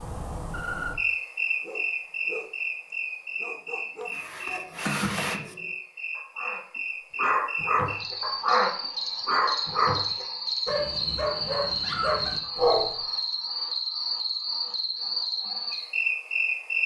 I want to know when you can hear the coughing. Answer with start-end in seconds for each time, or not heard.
4.0-5.8.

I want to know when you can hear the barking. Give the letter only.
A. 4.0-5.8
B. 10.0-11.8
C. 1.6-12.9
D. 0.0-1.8
C.